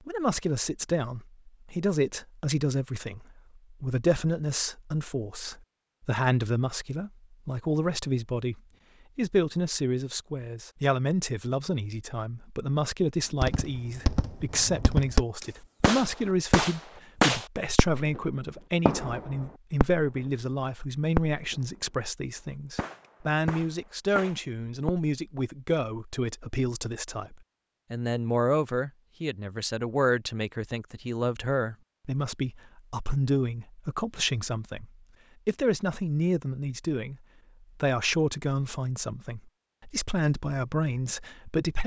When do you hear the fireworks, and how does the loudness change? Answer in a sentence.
You can hear the fireworks from 13.4 to 18.2 s, getting louder; briefly from 18.9 to 20.2 s; briefly from 21.1 to 21.6 s; and briefly from 22.4 to 25.1 s.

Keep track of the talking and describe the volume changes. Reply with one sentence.
The volume of the talking stays about the same.